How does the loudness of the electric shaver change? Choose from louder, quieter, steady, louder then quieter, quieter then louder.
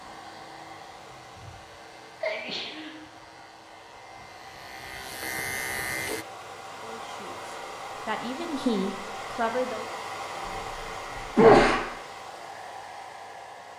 louder.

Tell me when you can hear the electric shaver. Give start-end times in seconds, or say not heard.
0.0-6.2.